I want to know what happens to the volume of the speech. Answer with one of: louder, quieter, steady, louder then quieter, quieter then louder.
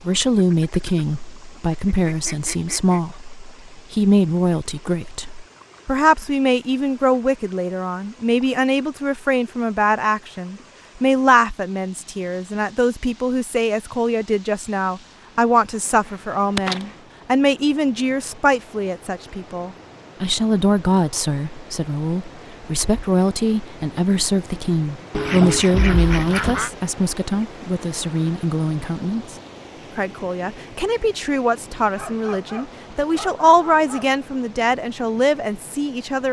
steady.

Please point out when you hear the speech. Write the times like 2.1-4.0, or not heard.
0.1-29.4, 29.9-36.2.